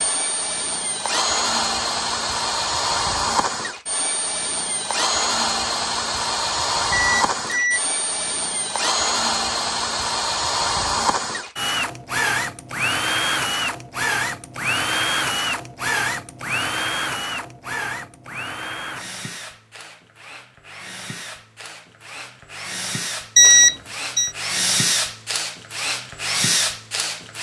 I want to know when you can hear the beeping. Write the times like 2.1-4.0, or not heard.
6.9-7.9, 23.4-24.3.